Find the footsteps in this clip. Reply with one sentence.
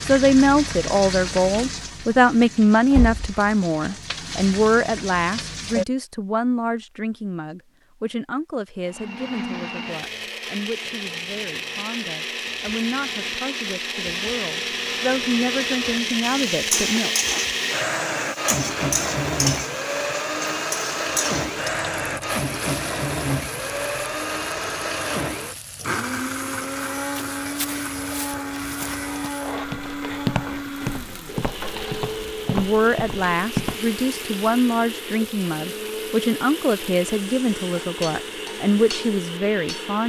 You can hear the footsteps from 26.9 to 33.8 s.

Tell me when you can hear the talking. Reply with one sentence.
You can hear the talking from 0.1 to 17.1 s and from 32.5 to 40.0 s.